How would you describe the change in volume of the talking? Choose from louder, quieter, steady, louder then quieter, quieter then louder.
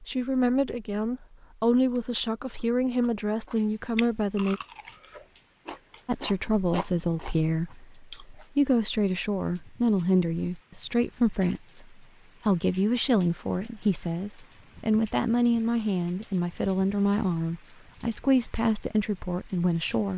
steady.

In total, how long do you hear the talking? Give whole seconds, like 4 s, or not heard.
19 s.